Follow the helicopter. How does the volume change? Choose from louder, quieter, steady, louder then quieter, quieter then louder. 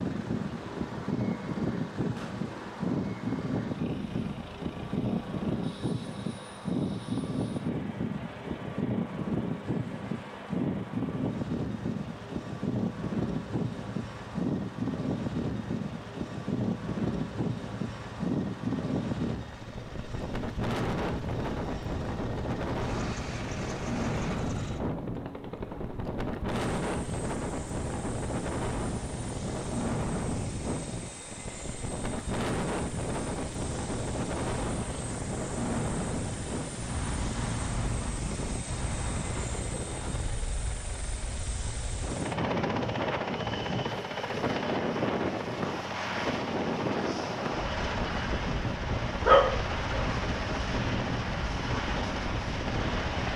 louder.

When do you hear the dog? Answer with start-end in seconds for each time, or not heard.
49.2-50.0.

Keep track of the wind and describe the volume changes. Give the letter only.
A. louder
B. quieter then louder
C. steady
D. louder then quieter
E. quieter
C.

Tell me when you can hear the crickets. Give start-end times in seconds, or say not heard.
not heard.